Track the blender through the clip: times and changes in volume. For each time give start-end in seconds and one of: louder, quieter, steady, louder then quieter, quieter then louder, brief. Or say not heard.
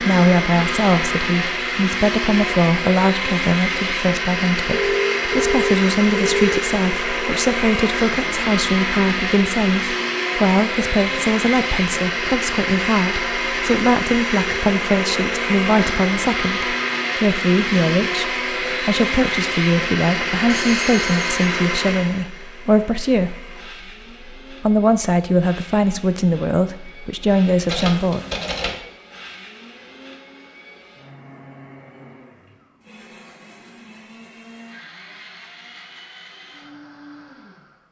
0.0-37.8 quieter.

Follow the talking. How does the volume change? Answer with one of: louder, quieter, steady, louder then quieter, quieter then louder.
steady.